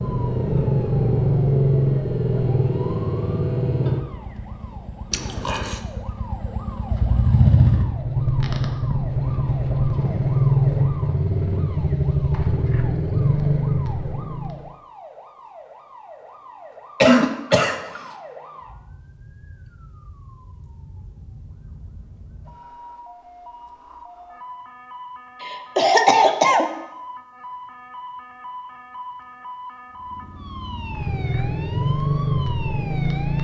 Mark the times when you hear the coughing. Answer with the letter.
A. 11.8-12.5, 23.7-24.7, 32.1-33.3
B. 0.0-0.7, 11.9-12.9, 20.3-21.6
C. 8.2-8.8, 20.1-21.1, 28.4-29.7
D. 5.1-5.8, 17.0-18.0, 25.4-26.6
D.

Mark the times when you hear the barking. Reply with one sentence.
You can't hear the barking here.